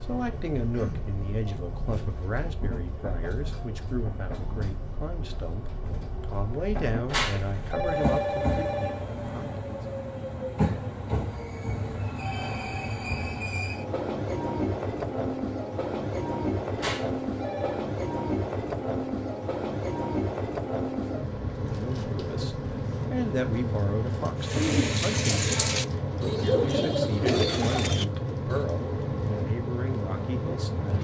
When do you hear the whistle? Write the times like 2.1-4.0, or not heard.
not heard.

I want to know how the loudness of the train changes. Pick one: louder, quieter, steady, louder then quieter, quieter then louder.
louder.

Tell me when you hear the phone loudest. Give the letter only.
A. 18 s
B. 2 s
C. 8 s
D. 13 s
C.